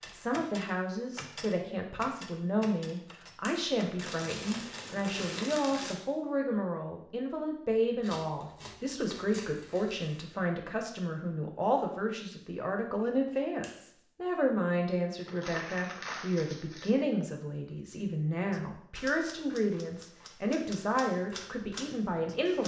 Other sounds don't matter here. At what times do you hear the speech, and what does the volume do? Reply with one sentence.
The speech can be heard from 0.1 to 22.6 s, at a steady volume.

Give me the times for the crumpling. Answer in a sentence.
You can hear the crumpling from 4.0 to 6.0 s, from 8.0 to 10.2 s and from 15.2 to 16.9 s.